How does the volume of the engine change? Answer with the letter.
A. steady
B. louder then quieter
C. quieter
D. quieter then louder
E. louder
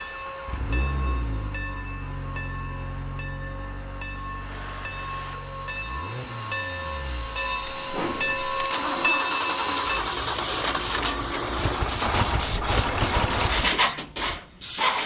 D.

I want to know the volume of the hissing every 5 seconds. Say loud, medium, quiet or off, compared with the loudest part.
medium, loud, loud.